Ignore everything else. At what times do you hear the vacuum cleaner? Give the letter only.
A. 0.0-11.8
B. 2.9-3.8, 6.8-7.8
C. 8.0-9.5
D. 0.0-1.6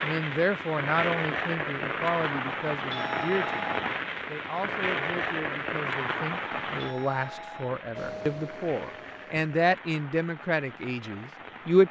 C.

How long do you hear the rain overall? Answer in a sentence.
You can hear the rain for 12 seconds altogether.